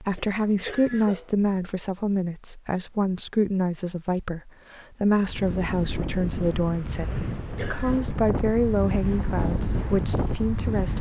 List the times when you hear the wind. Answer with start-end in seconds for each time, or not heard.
5.2-10.9.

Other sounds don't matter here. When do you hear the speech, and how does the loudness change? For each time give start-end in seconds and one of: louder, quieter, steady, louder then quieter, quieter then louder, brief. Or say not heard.
0.0-10.9 steady.